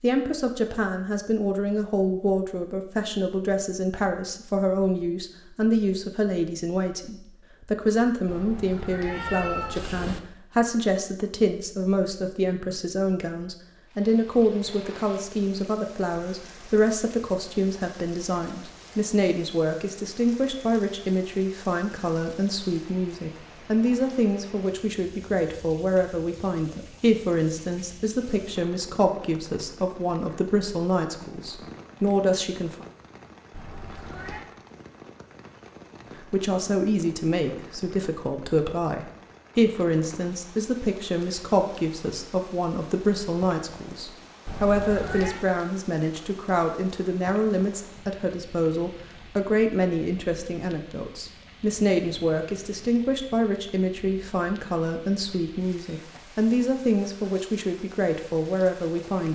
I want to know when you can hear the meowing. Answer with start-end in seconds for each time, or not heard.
8.2-10.2, 33.5-34.5, 44.5-45.5.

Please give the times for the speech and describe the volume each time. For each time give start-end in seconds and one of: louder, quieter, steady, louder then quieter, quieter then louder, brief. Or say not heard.
0.0-32.9 steady
36.1-59.3 steady.